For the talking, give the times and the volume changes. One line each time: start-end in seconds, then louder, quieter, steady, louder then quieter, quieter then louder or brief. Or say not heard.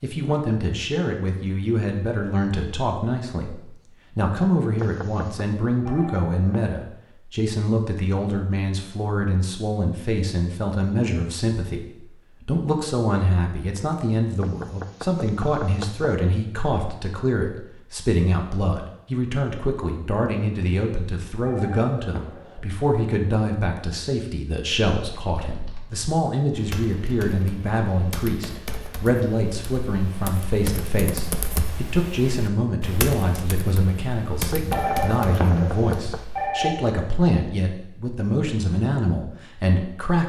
0.0-40.2 steady.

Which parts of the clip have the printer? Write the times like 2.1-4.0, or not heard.
not heard.